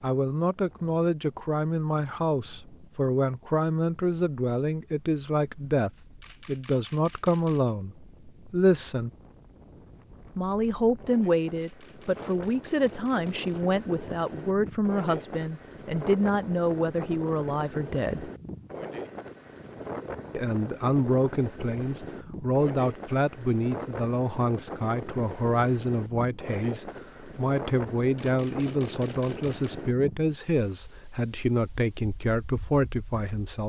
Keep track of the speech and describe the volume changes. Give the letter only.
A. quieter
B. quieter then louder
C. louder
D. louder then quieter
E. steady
E.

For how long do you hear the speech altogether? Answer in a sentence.
You can hear the speech for 30 seconds altogether.